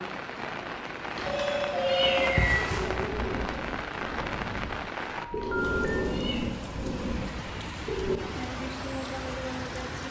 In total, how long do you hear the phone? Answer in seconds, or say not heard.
3 s.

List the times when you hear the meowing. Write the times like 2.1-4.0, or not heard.
1.1-2.7, 5.3-6.5.